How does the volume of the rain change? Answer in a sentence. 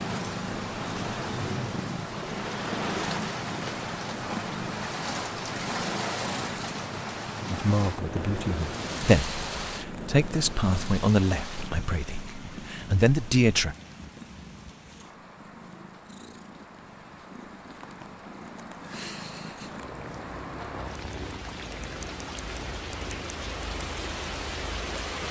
The loudness of the rain goes down, then up.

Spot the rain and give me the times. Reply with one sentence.
The rain can be heard from 0.0 to 25.2 s.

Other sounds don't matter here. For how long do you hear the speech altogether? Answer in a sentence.
You can hear the speech for 6 seconds altogether.